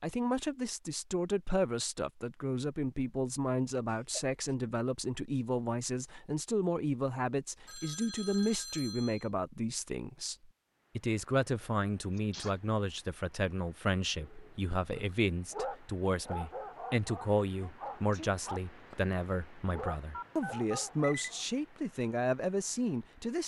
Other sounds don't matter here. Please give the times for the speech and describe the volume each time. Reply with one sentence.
The speech can be heard from 0.0 to 23.4 s, at a steady volume.